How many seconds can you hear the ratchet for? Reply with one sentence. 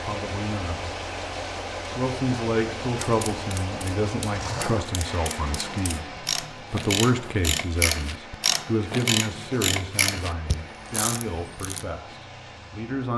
The ratchet can be heard for 9 seconds in total.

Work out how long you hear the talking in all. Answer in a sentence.
You can hear the talking for 12 seconds altogether.